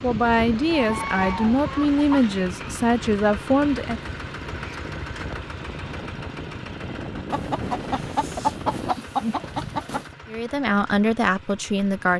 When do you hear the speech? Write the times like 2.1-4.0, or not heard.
0.0-4.0, 10.2-12.1.